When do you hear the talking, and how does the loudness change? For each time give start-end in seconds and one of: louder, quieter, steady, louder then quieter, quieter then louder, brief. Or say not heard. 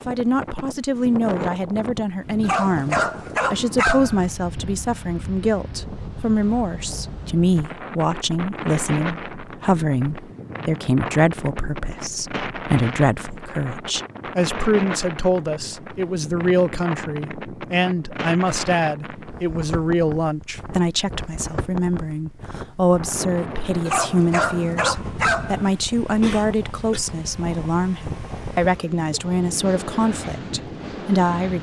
0.1-31.5 steady.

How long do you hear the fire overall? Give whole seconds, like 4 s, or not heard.
not heard.